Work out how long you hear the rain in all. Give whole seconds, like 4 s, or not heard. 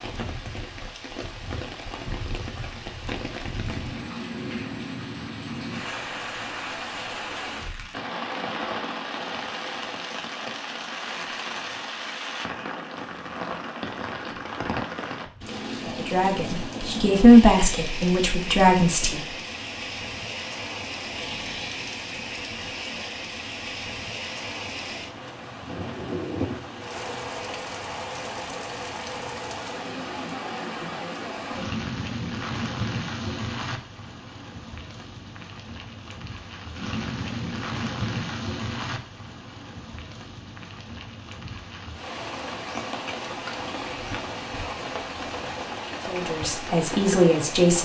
48 s.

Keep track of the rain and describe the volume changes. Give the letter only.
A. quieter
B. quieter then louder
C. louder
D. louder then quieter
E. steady
E.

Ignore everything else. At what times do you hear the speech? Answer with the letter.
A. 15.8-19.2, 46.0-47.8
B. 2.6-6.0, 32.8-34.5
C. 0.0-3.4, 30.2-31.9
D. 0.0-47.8
A.